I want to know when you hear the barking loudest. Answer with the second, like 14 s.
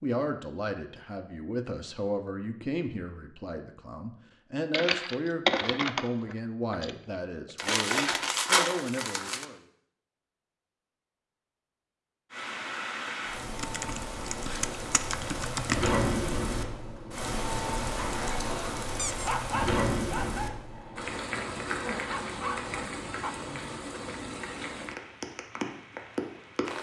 19 s.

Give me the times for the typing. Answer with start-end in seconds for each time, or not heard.
4.7-7.5, 13.6-15.9.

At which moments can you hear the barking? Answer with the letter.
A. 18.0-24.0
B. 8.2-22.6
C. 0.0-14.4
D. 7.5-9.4
A.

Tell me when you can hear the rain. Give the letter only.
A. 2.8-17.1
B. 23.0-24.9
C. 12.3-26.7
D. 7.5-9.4
C.